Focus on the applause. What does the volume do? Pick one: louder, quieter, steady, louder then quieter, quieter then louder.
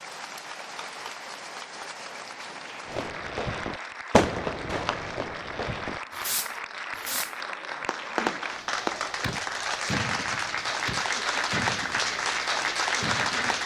louder.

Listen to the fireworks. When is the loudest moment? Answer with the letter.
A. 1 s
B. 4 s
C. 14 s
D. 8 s
B.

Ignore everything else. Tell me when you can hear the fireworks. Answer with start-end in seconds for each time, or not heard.
2.9-12.3, 13.0-13.6.